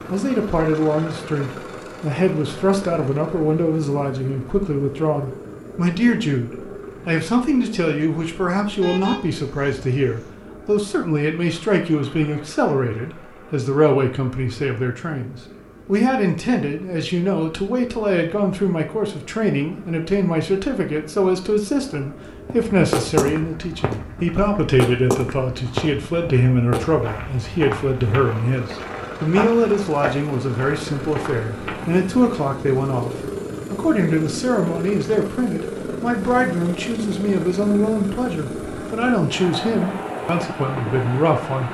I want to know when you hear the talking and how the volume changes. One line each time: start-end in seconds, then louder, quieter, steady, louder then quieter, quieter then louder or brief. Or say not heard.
0.1-41.6 steady.